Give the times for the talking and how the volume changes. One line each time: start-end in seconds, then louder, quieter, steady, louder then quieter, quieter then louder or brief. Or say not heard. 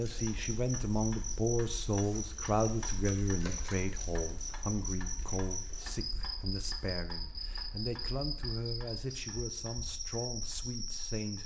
0.0-11.4 quieter.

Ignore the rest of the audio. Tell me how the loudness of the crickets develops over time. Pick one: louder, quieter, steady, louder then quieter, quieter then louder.
steady.